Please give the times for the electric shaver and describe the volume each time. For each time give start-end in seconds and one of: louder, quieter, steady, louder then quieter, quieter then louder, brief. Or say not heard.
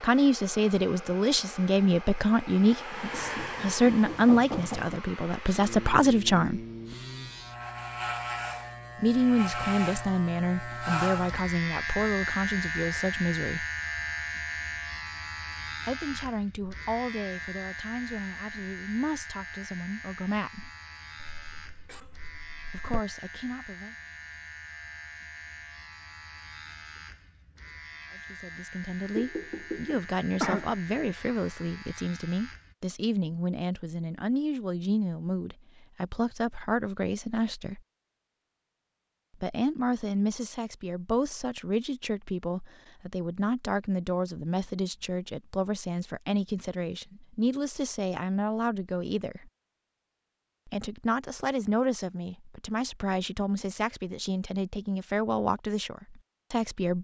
5.5-32.8 quieter.